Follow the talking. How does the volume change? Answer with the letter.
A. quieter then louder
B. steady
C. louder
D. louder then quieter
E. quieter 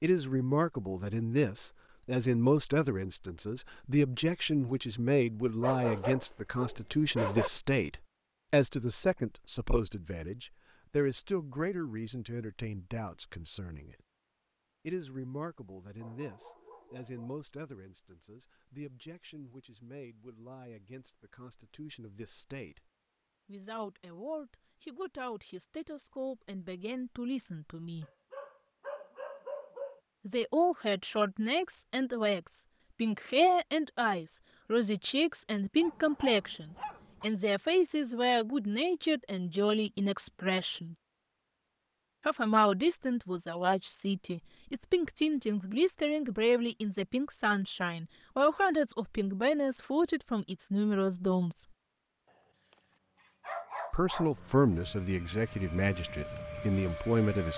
A.